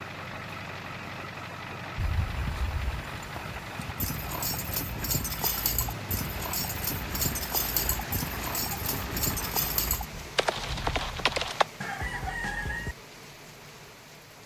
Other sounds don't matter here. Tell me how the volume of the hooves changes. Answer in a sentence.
The volume of the hooves goes up.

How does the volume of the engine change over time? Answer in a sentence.
The loudness of the engine stays about the same.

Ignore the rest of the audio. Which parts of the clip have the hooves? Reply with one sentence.
The hooves can be heard from 1.9 to 11.7 s.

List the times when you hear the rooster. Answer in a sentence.
The rooster can be heard from 11.8 to 12.9 s.